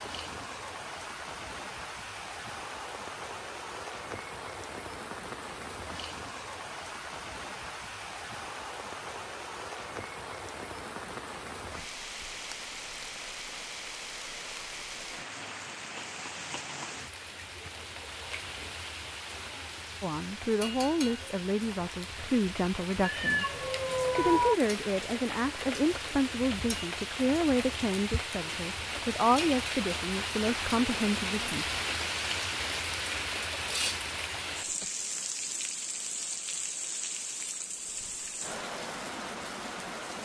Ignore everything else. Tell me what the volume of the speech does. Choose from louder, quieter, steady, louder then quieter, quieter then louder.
steady.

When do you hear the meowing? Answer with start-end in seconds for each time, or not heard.
23.0-24.6.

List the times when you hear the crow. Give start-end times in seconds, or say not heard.
not heard.